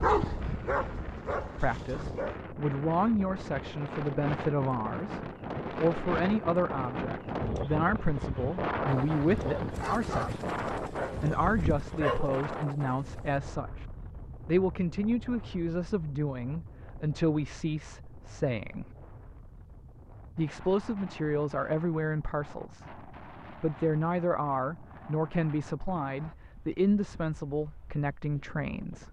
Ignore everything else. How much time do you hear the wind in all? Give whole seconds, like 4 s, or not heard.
29 s.